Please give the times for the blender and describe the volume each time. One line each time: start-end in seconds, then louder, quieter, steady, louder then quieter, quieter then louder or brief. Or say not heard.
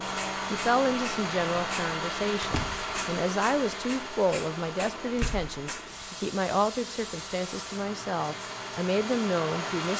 0.0-9.9 quieter then louder.